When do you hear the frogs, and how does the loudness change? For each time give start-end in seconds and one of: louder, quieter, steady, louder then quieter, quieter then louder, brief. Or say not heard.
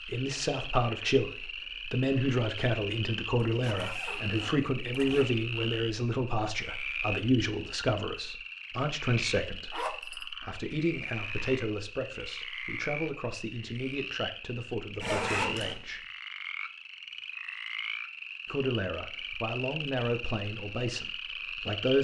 0.0-21.9 steady.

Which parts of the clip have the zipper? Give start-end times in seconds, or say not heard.
3.5-5.2, 9.7-10.2, 15.0-15.8.